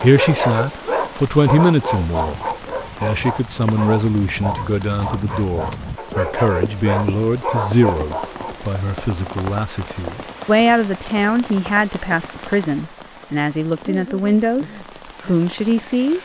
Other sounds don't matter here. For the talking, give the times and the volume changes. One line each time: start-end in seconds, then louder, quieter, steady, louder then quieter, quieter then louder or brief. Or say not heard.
0.0-2.4 brief
3.0-16.1 steady.